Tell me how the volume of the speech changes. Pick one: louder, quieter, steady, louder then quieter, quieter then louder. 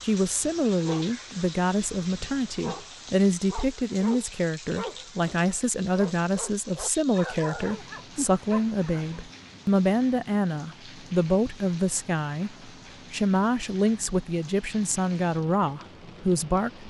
steady.